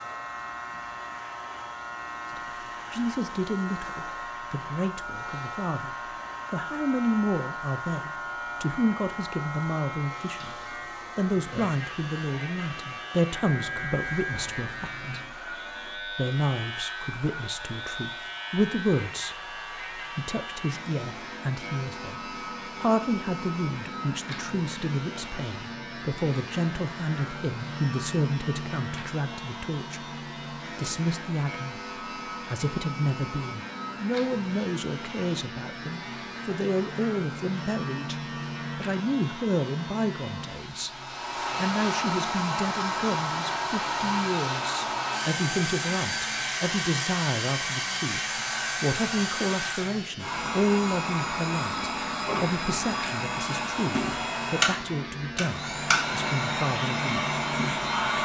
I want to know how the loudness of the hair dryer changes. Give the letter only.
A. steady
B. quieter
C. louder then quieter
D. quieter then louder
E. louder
E.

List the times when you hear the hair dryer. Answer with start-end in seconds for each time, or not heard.
0.0-58.1.